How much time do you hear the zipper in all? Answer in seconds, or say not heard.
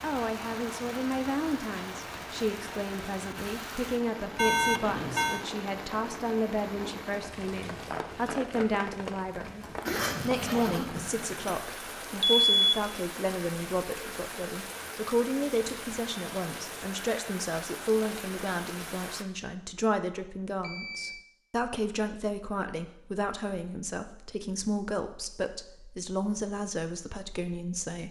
2 s.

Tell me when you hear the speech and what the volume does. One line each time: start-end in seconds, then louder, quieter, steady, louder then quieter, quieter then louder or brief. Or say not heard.
0.0-28.0 steady.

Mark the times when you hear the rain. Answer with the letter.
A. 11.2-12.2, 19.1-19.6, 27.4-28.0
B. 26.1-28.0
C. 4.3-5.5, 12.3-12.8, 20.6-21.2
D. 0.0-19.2
D.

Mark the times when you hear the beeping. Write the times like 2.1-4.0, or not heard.
4.3-5.5, 12.3-12.8, 20.6-21.2.